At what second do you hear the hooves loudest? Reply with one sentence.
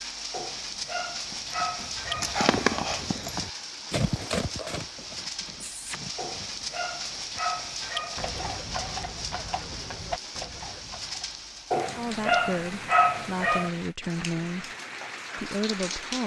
The volume of the hooves peaks at 3 seconds.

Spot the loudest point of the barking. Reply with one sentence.
The loudest moment of the barking is at 13 seconds.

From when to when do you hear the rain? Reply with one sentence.
The rain can be heard from 0.0 to 16.2 s.